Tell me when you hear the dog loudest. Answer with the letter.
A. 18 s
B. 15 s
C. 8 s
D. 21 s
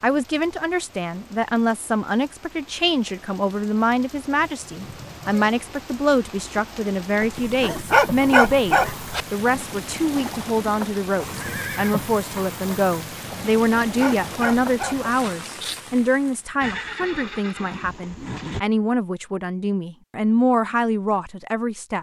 C.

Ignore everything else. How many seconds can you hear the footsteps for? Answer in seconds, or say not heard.
not heard.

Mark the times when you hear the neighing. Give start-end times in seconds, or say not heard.
4.3-5.5, 11.2-11.9, 16.6-18.6.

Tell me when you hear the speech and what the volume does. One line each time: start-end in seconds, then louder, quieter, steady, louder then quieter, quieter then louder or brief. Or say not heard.
0.0-21.9 steady.